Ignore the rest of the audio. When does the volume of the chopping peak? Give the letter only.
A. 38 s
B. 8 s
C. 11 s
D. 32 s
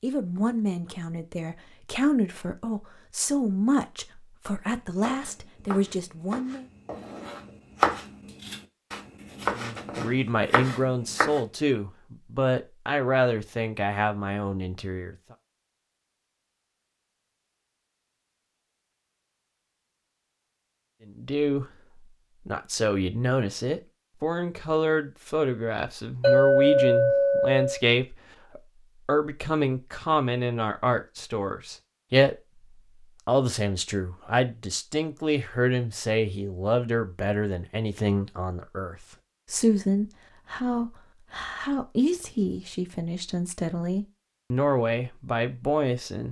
B.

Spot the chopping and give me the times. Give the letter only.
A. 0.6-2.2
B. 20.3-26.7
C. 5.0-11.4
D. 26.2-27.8
C.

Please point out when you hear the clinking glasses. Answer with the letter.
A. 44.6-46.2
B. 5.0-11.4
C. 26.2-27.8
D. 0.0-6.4
C.